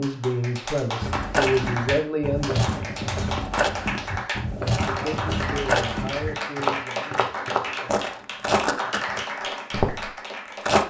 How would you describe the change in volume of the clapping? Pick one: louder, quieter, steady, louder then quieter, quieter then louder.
steady.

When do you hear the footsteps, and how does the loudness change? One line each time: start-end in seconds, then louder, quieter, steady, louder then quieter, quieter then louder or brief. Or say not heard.
1.0-10.8 steady.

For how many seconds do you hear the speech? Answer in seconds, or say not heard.
6 s.